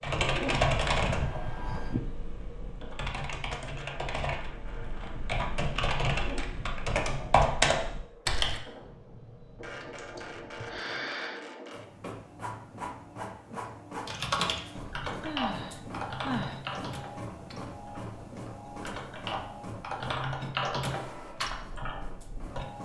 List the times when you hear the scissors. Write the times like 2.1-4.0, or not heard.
8.8-10.8.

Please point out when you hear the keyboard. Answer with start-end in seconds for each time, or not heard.
0.0-8.6, 14.1-22.6.